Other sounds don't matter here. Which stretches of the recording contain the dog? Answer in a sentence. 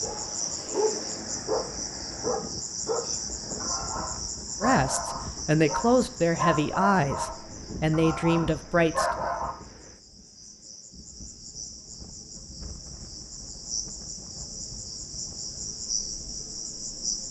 The dog can be heard from 0.0 to 9.6 s.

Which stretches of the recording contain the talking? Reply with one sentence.
You can hear the talking from 4.6 to 9.1 s.